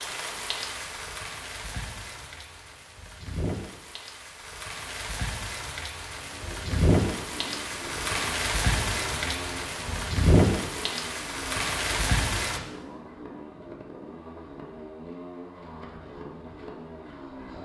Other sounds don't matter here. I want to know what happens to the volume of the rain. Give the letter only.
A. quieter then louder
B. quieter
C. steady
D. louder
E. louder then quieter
D.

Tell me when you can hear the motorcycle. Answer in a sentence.
You can hear the motorcycle from 6.2 to 17.6 s.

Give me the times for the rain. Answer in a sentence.
The rain can be heard from 0.0 to 12.6 s.